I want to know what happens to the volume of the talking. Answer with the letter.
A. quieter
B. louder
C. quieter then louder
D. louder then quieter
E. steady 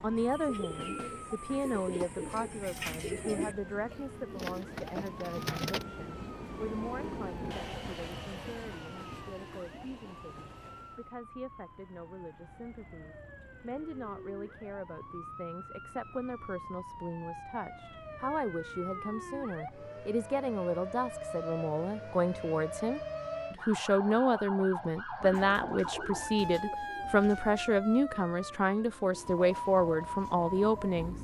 C.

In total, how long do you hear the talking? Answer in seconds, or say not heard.
31 s.